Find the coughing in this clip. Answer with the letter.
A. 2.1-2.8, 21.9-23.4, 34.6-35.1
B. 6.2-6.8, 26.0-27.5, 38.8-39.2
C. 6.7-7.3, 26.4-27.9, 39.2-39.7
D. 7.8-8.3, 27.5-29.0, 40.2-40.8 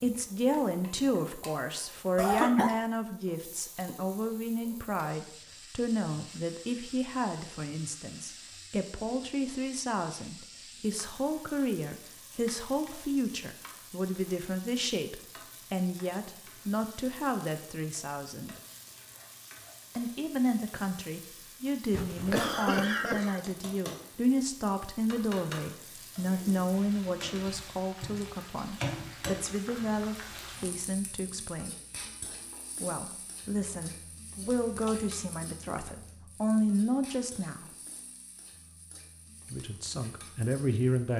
A.